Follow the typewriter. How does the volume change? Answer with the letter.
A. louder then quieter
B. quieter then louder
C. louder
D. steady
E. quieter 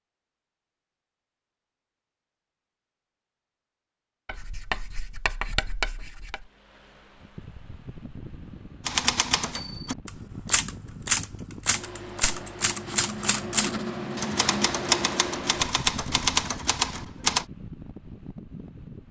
C.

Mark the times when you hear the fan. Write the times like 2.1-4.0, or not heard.
6.3-19.0.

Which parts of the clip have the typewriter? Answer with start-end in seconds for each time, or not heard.
8.8-17.4.